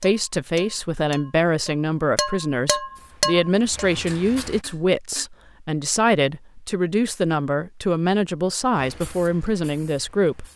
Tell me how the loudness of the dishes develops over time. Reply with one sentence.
The loudness of the dishes goes up, then down.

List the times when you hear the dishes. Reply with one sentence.
You can hear the dishes from 0.0 to 5.2 s.